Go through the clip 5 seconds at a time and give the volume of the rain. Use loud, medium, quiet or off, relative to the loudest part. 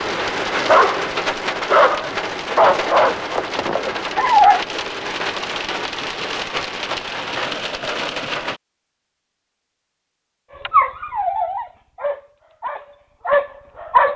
loud, loud, off.